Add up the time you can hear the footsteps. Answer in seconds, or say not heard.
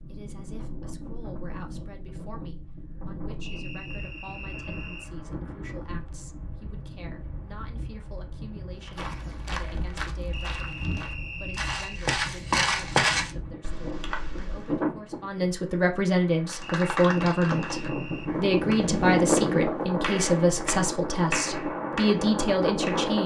6 s.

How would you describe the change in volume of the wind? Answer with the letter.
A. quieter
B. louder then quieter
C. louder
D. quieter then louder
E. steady
C.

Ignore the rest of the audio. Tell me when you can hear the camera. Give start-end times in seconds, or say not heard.
not heard.